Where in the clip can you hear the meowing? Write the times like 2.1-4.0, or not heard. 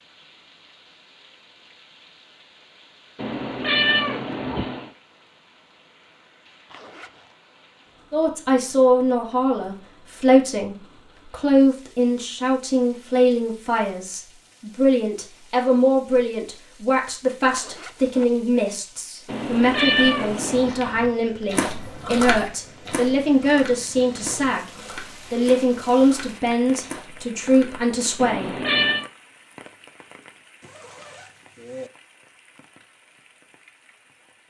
3.1-4.9, 19.2-20.8, 28.1-29.1.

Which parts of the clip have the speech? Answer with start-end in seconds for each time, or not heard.
8.1-28.6.